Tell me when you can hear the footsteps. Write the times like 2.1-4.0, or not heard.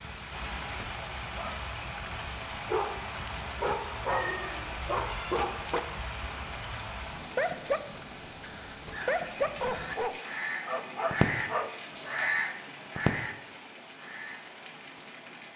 not heard.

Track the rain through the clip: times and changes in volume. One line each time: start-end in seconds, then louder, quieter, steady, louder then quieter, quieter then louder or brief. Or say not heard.
0.0-15.5 quieter.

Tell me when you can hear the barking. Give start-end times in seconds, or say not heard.
1.1-1.9, 2.6-12.4.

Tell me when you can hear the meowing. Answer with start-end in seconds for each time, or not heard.
4.0-5.3.